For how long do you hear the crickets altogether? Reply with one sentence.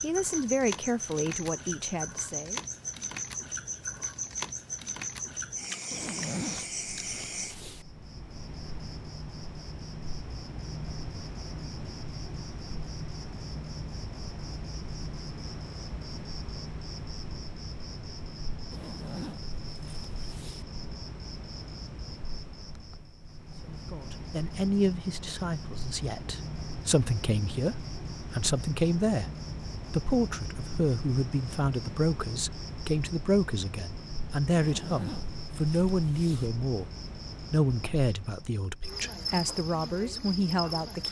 You can hear the crickets for 41 seconds altogether.